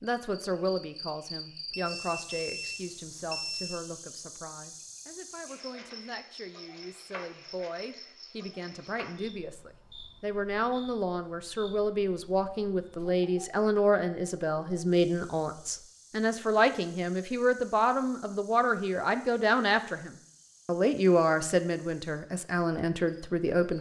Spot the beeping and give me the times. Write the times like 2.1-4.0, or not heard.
1.7-3.8.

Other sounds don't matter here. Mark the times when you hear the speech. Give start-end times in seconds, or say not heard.
0.0-23.7.